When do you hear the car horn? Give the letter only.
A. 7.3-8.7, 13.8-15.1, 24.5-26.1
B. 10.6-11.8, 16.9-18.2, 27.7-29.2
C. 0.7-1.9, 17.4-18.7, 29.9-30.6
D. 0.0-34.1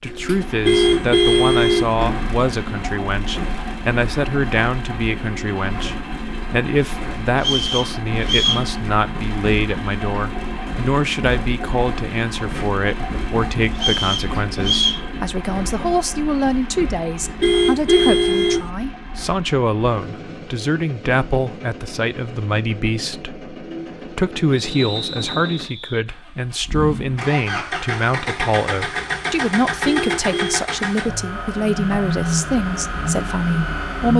C.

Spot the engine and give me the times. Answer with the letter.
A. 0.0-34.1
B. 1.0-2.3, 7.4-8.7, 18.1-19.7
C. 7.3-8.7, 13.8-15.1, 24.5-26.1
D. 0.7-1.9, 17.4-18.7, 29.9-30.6
A.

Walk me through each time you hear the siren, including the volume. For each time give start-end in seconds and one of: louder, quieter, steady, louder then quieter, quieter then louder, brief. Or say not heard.
not heard.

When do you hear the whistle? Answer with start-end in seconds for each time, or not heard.
7.3-8.7, 13.8-15.1, 24.5-26.1.